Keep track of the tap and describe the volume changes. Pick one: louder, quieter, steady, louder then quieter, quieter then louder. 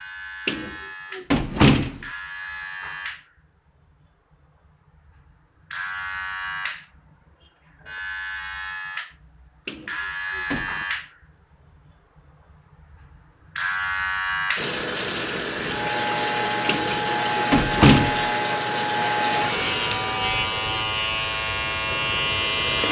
quieter.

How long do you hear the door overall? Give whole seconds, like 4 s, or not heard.
4 s.